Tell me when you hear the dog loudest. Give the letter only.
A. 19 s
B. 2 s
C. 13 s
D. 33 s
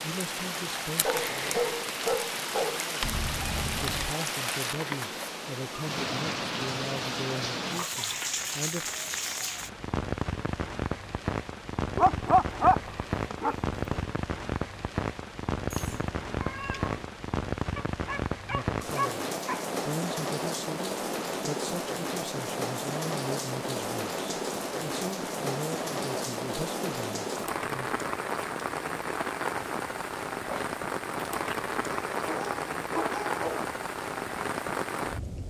C.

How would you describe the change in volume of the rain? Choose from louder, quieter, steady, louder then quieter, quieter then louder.
steady.